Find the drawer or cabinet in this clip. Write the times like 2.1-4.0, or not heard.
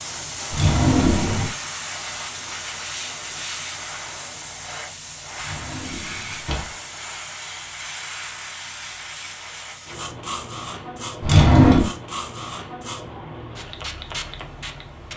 0.5-1.5, 5.5-6.7, 11.2-11.9.